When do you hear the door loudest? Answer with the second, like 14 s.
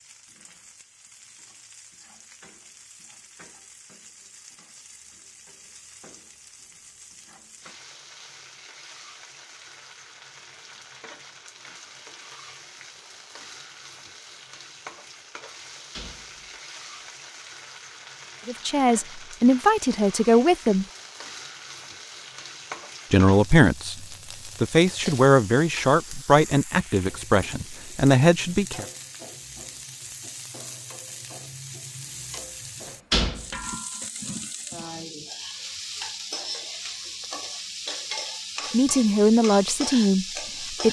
33 s.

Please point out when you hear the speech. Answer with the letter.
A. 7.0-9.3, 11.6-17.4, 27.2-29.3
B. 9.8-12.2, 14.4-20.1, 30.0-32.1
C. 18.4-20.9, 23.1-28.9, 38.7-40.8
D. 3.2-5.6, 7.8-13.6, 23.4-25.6
C.